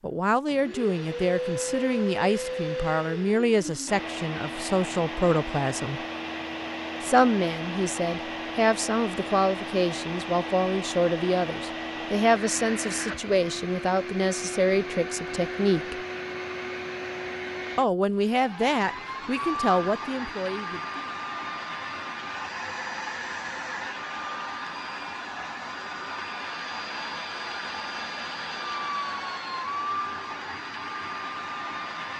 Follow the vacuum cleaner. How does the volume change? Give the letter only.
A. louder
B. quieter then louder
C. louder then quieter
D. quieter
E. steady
E.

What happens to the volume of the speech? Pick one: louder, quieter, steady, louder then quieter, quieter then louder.
steady.